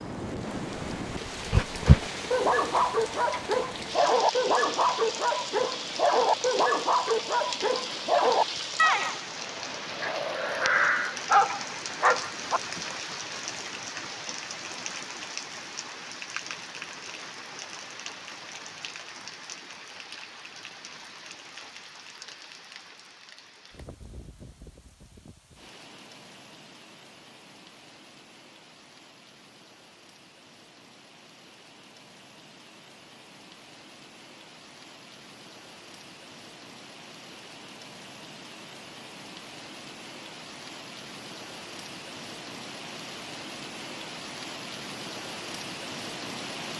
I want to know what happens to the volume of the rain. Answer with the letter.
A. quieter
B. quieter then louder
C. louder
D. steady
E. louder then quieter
B.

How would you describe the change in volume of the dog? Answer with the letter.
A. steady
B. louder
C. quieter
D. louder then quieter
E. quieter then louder
A.